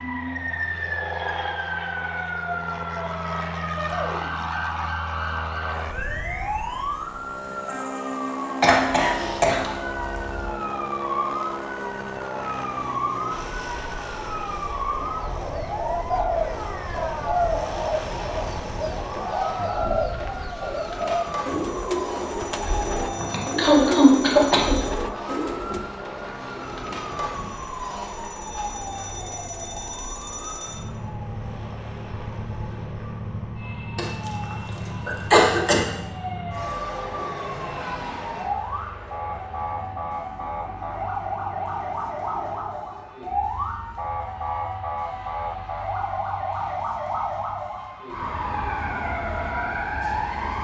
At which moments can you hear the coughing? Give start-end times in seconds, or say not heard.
8.6-10.4, 22.9-24.8, 34.0-35.9.